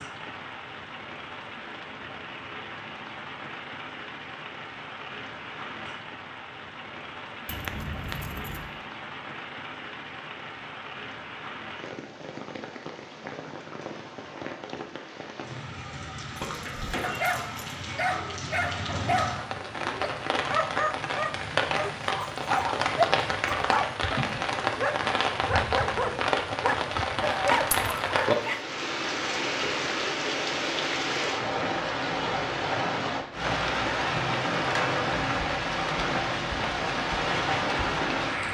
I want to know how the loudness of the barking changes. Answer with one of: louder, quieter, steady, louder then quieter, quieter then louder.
steady.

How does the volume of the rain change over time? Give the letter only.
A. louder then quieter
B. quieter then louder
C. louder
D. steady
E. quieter
C.